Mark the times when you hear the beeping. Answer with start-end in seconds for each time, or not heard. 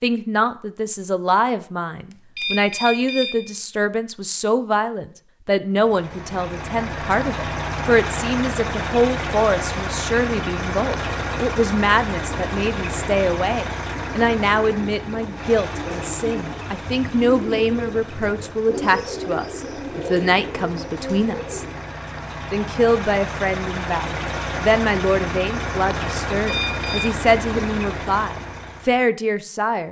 2.4-3.5, 26.4-27.1.